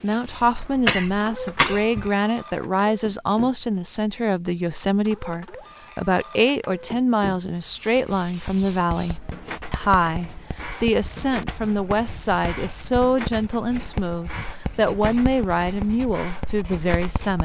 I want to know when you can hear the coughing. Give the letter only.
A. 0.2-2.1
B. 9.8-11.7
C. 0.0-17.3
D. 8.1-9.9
A.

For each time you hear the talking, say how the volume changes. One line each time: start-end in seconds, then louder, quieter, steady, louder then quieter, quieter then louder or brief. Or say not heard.
0.0-17.3 steady.